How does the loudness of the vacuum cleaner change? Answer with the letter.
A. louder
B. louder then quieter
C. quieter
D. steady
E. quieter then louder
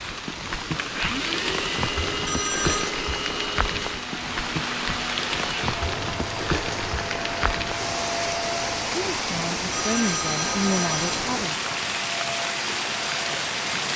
D.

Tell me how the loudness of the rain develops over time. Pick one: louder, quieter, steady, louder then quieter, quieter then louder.
steady.